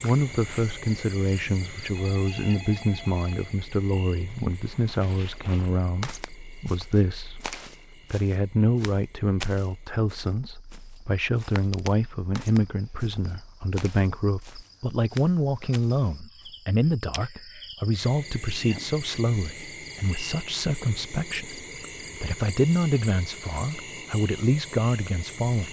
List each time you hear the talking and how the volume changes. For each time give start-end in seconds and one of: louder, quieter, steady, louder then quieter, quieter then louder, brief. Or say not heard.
0.0-25.6 steady.